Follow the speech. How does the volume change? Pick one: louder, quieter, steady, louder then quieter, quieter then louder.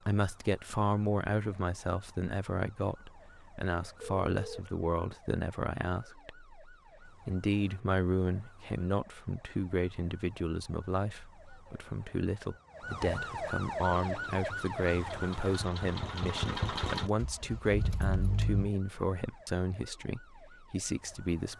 steady.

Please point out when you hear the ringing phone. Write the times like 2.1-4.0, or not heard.
4.0-5.2.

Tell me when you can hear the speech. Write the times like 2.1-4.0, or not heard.
0.1-21.5.